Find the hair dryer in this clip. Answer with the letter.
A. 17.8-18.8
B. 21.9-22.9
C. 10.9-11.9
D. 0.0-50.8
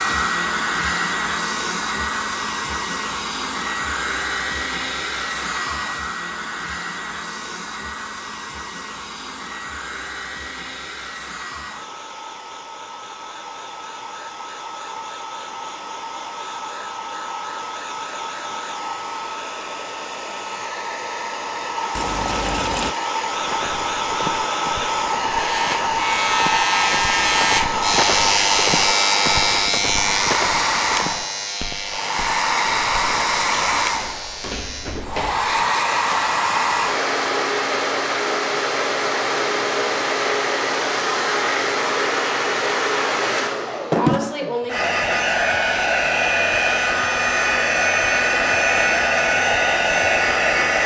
D.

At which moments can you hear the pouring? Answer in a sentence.
You can hear the pouring from 21.9 to 22.9 s.